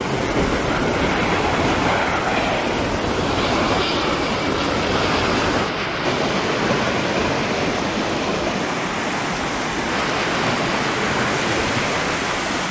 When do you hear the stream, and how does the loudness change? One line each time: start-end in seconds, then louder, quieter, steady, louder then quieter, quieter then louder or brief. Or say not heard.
0.0-12.6 steady.